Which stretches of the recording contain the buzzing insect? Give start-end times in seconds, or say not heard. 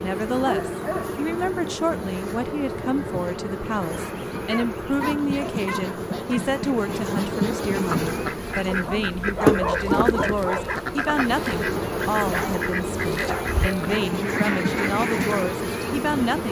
0.0-16.4.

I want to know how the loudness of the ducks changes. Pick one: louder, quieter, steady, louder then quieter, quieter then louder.
steady.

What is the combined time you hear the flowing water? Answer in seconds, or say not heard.
not heard.